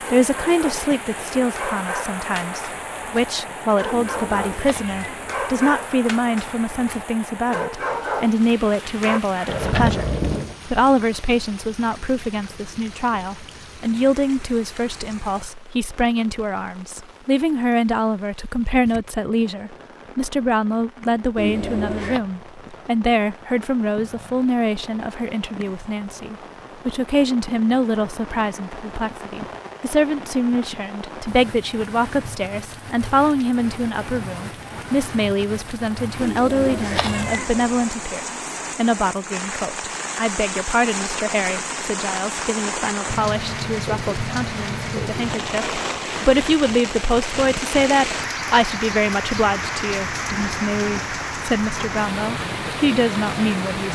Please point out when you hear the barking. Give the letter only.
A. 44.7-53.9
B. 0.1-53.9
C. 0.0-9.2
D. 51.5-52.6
C.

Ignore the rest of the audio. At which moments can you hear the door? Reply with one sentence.
You can hear the door from 9.4 to 10.6 s.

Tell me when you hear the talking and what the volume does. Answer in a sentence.
You can hear the talking from 0.1 to 53.9 s, at a steady volume.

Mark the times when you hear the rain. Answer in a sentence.
You can hear the rain from 0.0 to 53.9 s.